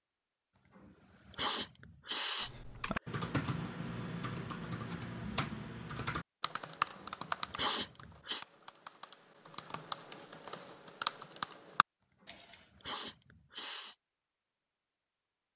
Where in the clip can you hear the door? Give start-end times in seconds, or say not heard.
not heard.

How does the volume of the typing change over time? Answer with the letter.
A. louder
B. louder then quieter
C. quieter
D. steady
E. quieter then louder
E.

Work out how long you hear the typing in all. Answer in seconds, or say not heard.
10 s.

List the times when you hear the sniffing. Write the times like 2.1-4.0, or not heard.
0.6-2.5, 6.8-8.4, 12.0-13.9.